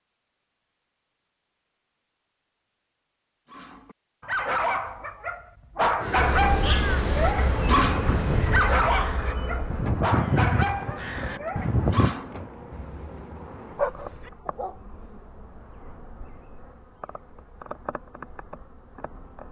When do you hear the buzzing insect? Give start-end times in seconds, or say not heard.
6.2-19.4.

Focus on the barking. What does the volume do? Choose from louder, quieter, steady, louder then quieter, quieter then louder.
quieter.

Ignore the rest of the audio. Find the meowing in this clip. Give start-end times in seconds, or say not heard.
not heard.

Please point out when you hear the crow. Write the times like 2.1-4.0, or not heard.
6.0-12.2.